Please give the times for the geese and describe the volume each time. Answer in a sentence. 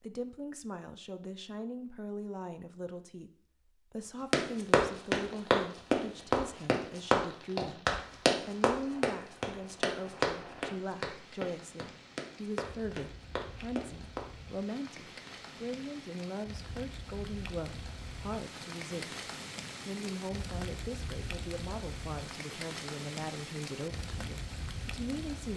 You can't hear the geese here.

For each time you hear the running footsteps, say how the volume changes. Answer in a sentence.
The running footsteps can be heard from 4.3 to 14.2 s, getting quieter.